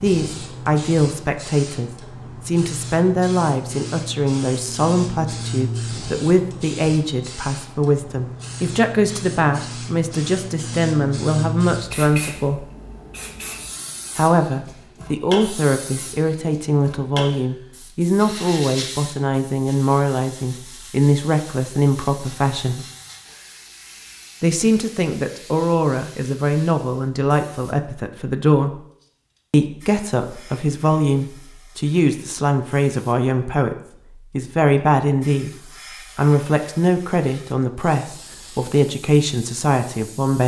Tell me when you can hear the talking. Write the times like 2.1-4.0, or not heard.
0.0-12.7, 14.2-22.9, 24.4-28.8, 29.5-35.5, 36.1-40.4.